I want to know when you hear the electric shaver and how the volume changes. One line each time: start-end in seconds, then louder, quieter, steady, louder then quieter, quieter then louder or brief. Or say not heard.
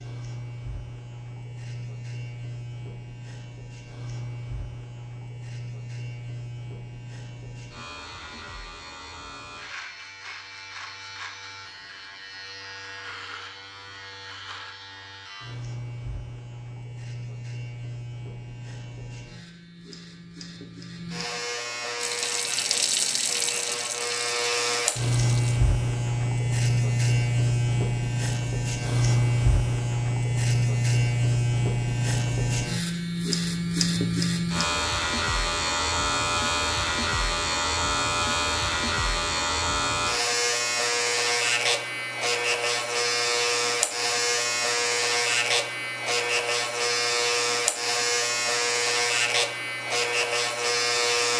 0.0-51.3 louder.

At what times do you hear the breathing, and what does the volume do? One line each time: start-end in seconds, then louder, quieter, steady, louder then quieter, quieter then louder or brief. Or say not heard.
not heard.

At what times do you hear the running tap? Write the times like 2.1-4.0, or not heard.
22.0-25.6.